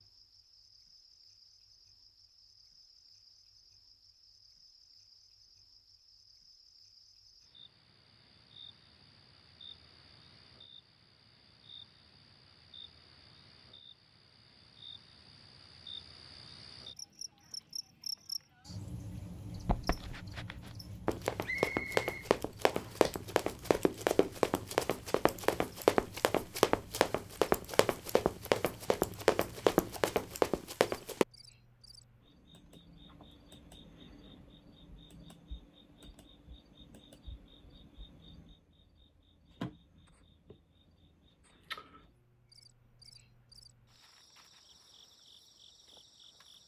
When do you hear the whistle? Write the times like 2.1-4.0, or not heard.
21.4-23.1.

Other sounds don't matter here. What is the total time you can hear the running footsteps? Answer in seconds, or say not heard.
12 s.